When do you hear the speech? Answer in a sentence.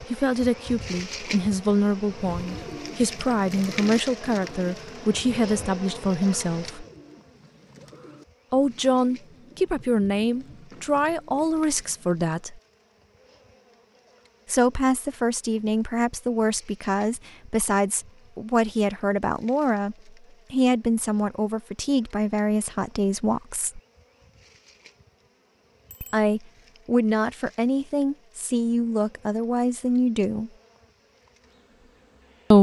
The speech can be heard from 0.1 to 6.8 s, from 8.5 to 12.6 s, from 14.4 to 23.8 s and from 26.1 to 30.5 s.